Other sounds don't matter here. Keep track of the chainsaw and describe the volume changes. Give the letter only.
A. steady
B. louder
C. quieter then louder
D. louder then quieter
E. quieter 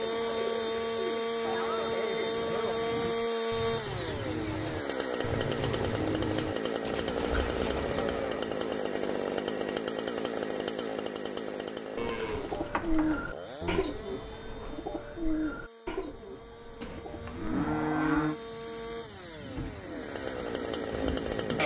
C.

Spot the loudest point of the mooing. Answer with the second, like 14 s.
18 s.